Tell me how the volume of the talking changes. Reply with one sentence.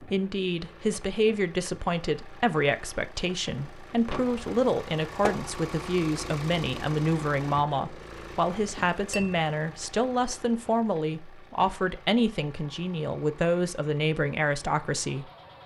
The volume of the talking stays about the same.